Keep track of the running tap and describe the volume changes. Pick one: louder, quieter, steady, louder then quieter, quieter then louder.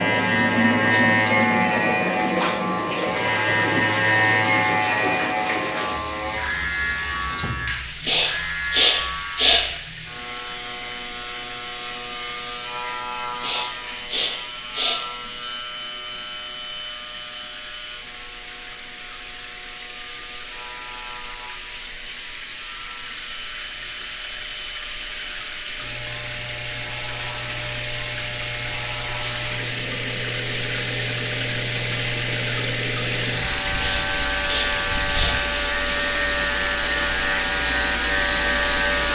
quieter then louder.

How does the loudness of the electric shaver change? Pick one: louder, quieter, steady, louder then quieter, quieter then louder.
quieter then louder.